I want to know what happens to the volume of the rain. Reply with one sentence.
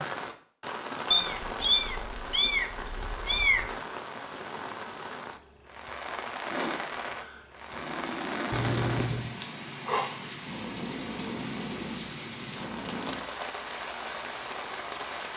The volume of the rain stays about the same.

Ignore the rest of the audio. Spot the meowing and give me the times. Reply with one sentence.
The meowing can be heard from 1.1 to 3.7 s and from 8.5 to 9.3 s.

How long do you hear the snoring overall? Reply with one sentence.
The snoring can be heard for 7 seconds in total.